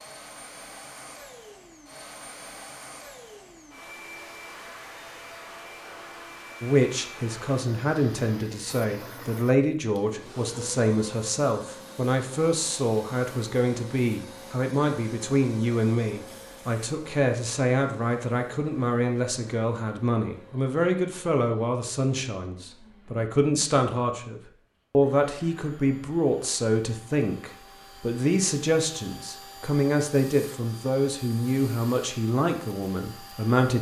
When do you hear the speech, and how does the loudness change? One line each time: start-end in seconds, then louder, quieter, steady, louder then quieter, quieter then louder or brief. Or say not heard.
6.6-33.7 steady.